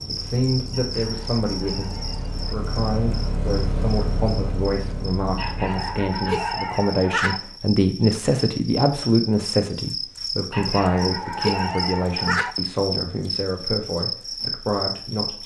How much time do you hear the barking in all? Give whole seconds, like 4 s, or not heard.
6 s.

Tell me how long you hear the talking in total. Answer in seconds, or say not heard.
15 s.